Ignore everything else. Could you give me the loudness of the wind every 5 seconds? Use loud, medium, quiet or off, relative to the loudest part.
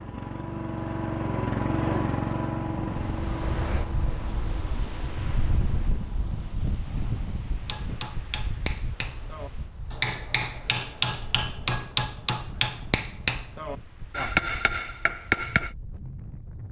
loud, loud, medium, medium.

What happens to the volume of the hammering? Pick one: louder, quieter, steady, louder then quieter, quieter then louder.
louder.